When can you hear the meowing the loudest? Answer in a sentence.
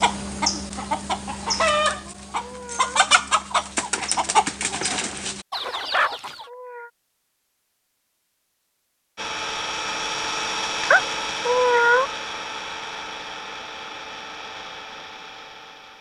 The loudest moment of the meowing is at 12 seconds.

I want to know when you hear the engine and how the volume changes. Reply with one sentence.
You can hear the engine from 9.2 to 15.9 s, getting quieter.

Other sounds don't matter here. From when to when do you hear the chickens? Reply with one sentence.
The chickens can be heard from 0.0 to 6.5 s.